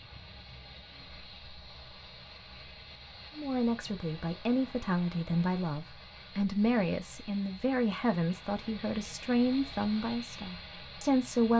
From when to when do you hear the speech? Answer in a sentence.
You can hear the speech from 3.4 to 11.5 s.